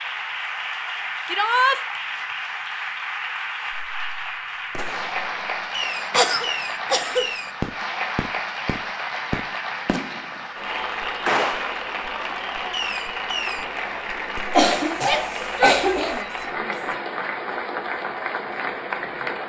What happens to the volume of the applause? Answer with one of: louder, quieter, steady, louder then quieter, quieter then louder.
steady.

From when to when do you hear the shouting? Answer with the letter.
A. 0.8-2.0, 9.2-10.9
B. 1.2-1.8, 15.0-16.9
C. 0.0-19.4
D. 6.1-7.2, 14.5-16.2
B.